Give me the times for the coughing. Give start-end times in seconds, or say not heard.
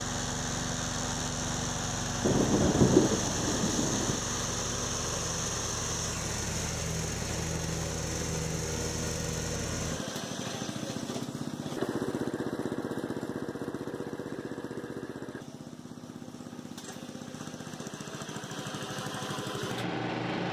not heard.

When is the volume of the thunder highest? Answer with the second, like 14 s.
3 s.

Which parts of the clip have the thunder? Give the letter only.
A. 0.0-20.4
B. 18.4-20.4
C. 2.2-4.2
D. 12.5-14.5
C.